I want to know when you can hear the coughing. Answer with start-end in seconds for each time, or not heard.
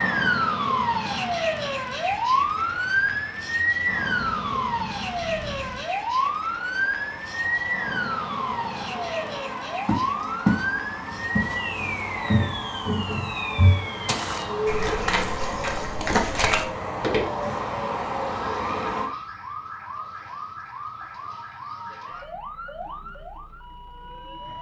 not heard.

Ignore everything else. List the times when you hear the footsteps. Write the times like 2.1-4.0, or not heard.
9.8-10.7, 11.3-17.6.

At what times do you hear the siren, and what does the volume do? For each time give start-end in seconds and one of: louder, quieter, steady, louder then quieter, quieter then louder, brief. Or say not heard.
0.0-24.5 quieter.